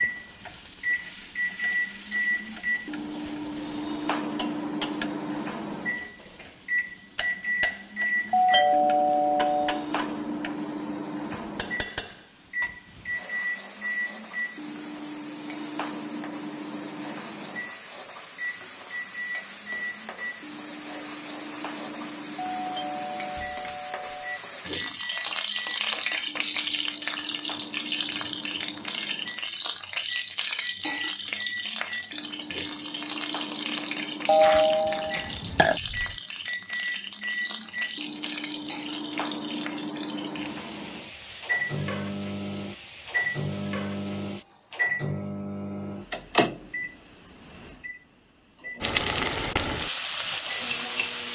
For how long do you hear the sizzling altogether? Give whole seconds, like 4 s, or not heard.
47 s.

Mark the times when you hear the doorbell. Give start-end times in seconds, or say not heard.
8.3-9.8, 22.6-24.4, 34.2-36.1.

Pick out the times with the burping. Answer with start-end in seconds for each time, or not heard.
35.1-35.8.